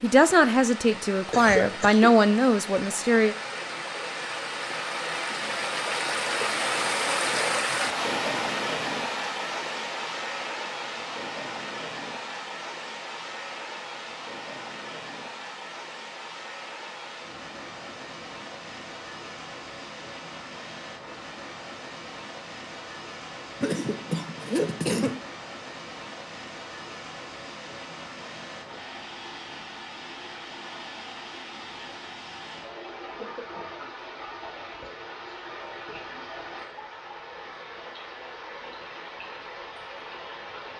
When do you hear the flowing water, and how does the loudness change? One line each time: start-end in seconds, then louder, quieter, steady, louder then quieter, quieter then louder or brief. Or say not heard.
0.0-40.7 quieter.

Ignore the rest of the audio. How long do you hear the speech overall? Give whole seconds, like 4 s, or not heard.
3 s.